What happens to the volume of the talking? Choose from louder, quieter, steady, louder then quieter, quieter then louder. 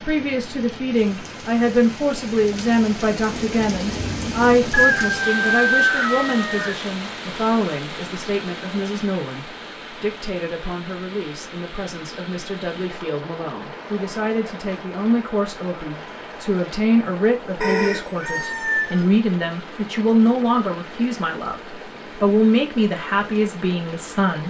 quieter then louder.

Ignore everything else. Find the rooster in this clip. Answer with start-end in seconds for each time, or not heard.
4.7-6.8, 17.6-19.1.